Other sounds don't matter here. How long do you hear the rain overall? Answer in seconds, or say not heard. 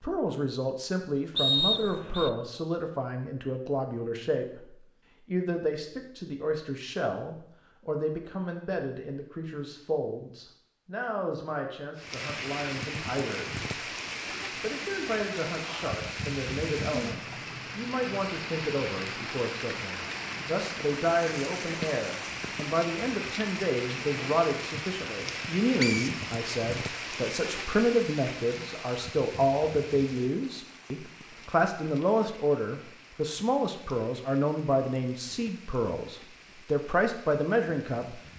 26 s.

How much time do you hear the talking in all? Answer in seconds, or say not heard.
37 s.